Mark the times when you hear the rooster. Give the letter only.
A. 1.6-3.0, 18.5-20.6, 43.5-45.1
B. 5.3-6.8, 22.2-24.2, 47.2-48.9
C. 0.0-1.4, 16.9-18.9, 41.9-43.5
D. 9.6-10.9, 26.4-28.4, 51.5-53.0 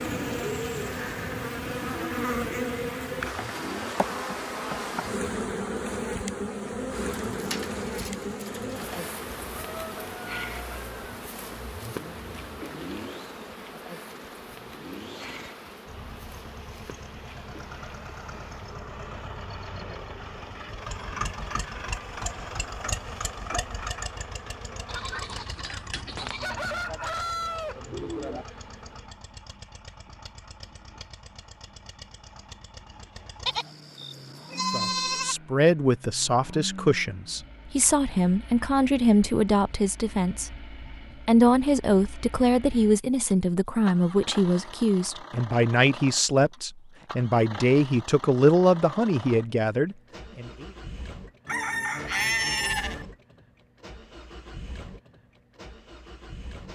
D.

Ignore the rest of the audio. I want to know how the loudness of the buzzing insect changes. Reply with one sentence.
The loudness of the buzzing insect goes down.